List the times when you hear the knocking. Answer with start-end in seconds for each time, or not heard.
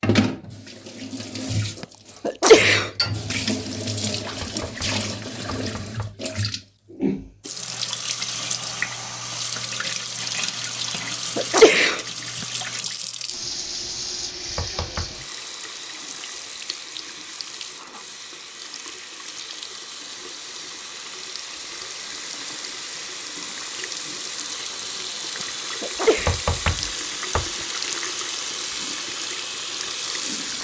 4.3-6.2, 14.4-15.2, 26.1-27.6.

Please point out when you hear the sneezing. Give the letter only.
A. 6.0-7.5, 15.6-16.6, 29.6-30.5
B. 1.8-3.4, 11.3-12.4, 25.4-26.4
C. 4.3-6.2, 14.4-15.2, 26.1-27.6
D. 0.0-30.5
B.